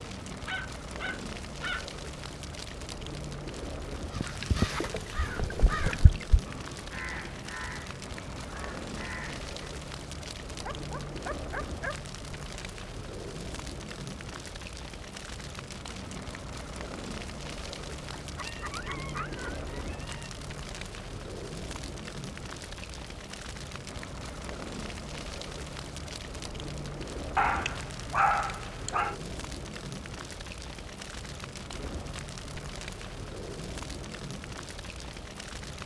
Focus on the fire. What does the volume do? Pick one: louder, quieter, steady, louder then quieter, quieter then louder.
steady.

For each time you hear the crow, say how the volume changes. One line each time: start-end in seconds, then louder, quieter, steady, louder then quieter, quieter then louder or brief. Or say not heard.
4.1-9.5 quieter.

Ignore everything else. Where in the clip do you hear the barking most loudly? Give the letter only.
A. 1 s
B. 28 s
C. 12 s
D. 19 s
B.